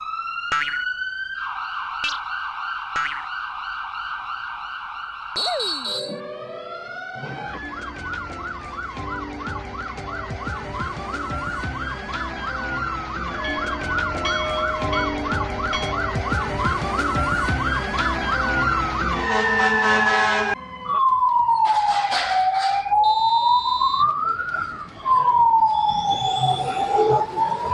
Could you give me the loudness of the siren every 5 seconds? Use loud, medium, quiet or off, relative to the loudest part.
medium, quiet, medium, loud, loud, loud.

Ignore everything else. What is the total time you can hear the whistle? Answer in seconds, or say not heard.
2 s.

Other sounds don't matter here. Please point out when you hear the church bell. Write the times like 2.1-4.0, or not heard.
13.3-15.9.